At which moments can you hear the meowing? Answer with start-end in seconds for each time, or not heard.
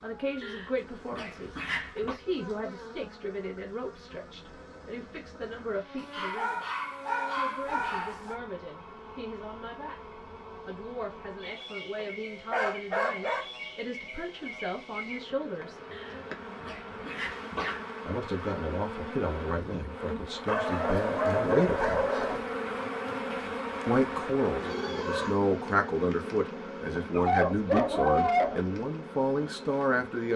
24.6-25.4.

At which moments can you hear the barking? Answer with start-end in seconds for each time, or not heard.
0.4-2.1, 6.0-8.4, 11.9-13.4, 15.9-17.8, 20.4-22.4, 27.1-28.6.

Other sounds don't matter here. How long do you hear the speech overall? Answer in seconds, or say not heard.
26 s.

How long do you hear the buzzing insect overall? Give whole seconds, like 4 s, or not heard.
30 s.